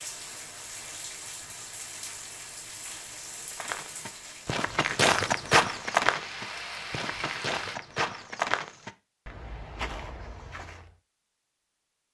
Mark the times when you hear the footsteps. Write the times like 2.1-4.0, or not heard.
3.5-10.9.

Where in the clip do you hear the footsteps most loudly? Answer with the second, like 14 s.
5 s.